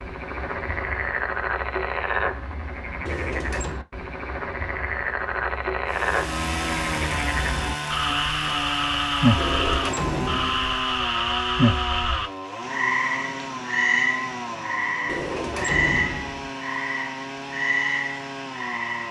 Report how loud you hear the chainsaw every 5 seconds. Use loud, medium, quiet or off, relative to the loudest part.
off, loud, loud, medium.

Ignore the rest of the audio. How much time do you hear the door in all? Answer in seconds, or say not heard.
4 s.